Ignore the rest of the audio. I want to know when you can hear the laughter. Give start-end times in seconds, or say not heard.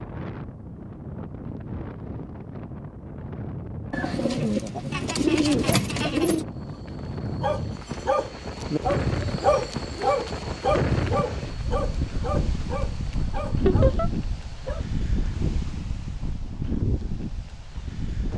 4.9-6.3, 13.7-14.1.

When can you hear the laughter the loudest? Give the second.
14 s.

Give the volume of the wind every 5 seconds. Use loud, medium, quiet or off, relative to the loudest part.
medium, loud, loud, loud.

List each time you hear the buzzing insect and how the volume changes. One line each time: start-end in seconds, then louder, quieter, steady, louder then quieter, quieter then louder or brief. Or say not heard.
not heard.